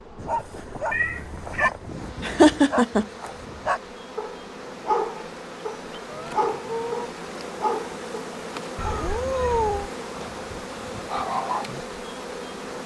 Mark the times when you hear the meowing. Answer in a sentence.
The meowing can be heard from 0.9 to 1.7 s, from 6.0 to 7.1 s and from 8.8 to 9.9 s.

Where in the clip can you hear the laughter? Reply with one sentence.
You can hear the laughter from 2.2 to 3.0 s.